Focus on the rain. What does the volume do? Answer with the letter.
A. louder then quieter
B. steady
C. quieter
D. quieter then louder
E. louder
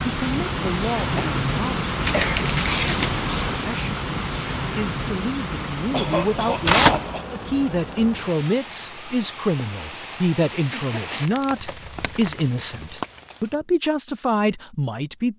C.